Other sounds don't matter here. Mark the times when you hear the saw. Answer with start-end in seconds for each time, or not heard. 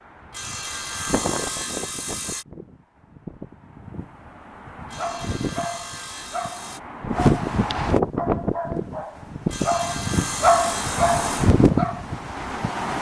0.3-2.5, 4.9-6.8, 9.5-11.5.